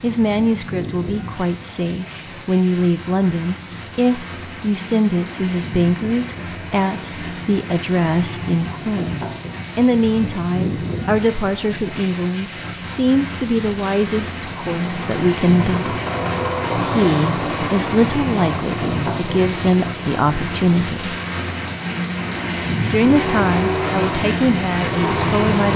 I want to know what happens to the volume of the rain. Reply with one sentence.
The volume of the rain goes up.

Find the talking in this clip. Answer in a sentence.
You can hear the talking from 0.0 to 15.9 s, from 16.8 to 21.1 s and from 22.9 to 25.7 s.